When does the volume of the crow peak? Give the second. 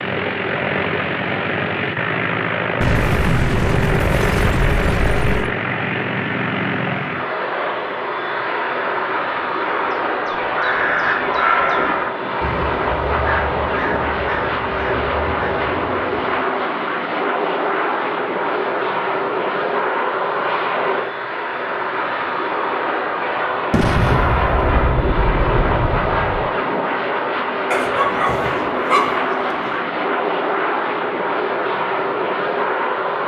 12 s.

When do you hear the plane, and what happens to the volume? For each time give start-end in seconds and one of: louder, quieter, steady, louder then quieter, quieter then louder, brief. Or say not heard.
0.0-33.2 steady.